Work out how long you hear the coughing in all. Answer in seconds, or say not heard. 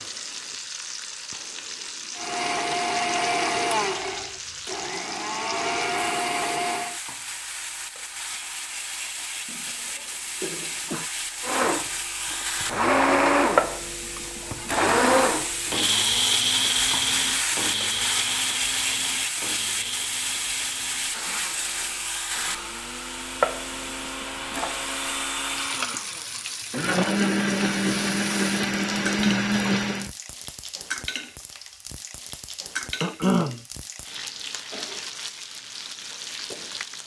2 s.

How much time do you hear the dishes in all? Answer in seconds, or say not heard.
not heard.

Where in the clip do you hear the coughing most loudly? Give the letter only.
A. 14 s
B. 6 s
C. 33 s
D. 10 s
C.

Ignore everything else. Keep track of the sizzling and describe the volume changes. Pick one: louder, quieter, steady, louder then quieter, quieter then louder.
louder then quieter.